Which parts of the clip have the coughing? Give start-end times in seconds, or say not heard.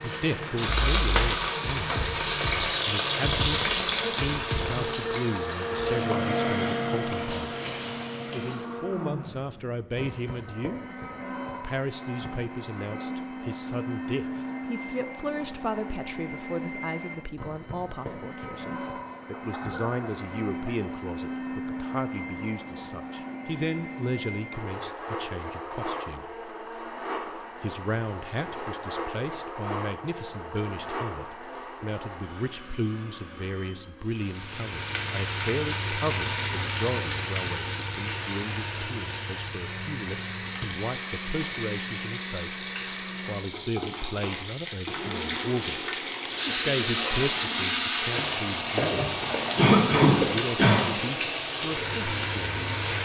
3.5-4.9, 19.1-20.8, 49.5-50.9.